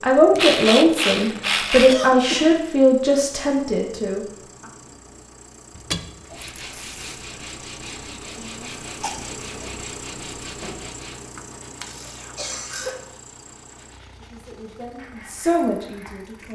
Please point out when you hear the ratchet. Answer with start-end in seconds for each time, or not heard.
0.3-1.9, 5.8-7.0, 11.3-13.1.